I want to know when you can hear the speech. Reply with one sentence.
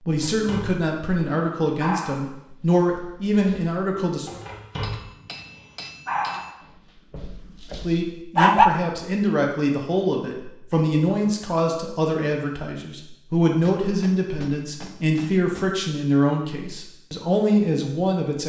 The speech can be heard from 0.1 to 4.4 s and from 7.8 to 18.4 s.